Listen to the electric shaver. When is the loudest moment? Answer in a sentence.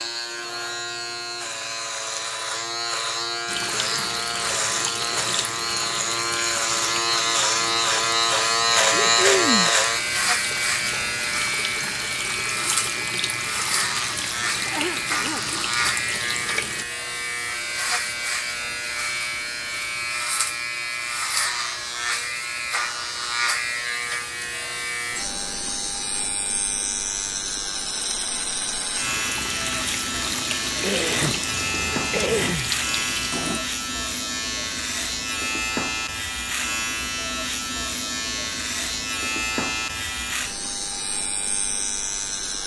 The volume of the electric shaver peaks at 9 seconds.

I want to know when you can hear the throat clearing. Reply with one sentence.
The throat clearing can be heard from 8.9 to 9.7 s, from 14.6 to 15.5 s and from 30.8 to 32.8 s.